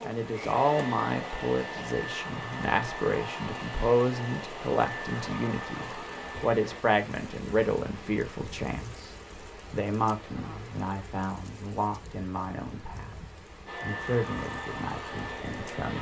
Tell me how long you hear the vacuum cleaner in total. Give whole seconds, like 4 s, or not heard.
9 s.